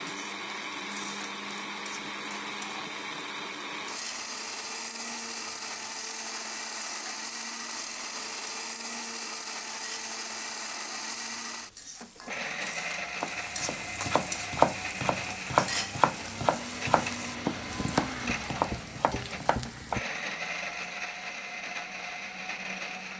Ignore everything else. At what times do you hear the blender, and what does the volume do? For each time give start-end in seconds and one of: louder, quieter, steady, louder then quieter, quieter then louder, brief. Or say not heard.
0.0-23.1 steady.